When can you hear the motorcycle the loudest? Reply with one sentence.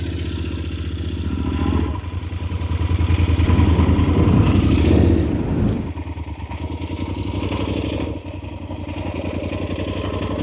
The loudest moment of the motorcycle is at 5 seconds.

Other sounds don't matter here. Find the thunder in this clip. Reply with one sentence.
You can hear the thunder from 3.4 to 6.0 s.